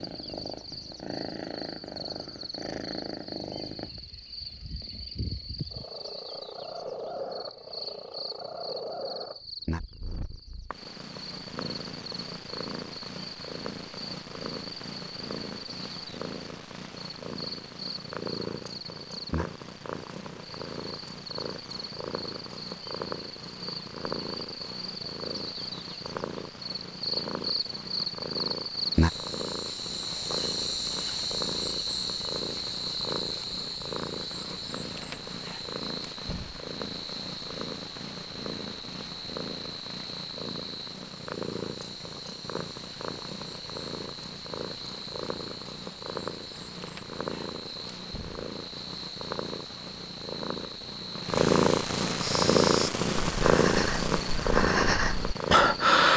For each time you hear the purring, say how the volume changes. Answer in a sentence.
You can hear the purring from 0.0 to 56.1 s, getting louder.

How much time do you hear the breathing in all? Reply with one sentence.
The breathing can be heard for 4 seconds in total.